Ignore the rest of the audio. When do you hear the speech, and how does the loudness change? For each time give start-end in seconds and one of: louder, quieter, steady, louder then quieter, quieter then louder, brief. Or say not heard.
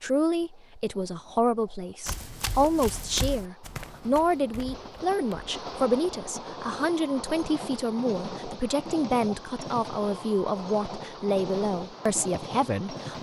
0.0-13.1 steady.